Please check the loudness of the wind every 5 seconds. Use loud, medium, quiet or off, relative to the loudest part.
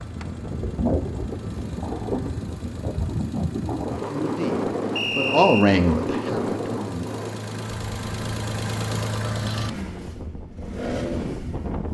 loud, loud, medium.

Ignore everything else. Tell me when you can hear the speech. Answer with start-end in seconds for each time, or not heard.
4.0-7.0.